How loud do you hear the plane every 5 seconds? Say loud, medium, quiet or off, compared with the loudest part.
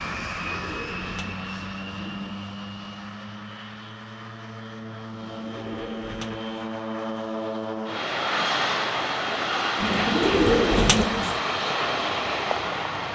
medium, loud, loud.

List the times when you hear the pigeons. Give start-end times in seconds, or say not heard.
0.1-2.5, 5.3-6.5, 9.8-11.4.